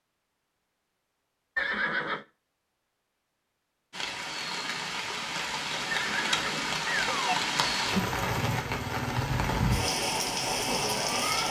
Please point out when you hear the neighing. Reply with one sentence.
You can hear the neighing from 1.6 to 2.2 s and from 5.9 to 7.3 s.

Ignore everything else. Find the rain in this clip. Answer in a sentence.
You can hear the rain from 3.9 to 11.4 s.